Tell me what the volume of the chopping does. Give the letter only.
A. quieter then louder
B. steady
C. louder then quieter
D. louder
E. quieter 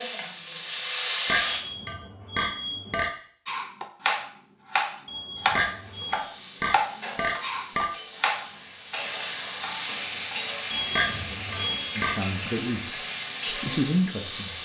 E.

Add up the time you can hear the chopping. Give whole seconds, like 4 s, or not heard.
7 s.